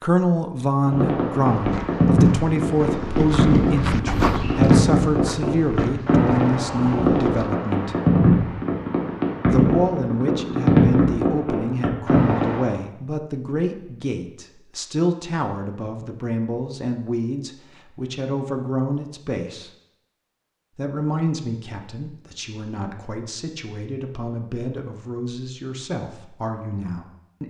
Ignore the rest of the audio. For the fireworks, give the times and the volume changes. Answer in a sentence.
You can hear the fireworks from 0.8 to 12.8 s, at a steady volume.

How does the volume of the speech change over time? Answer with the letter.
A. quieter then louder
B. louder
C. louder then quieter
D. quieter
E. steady
D.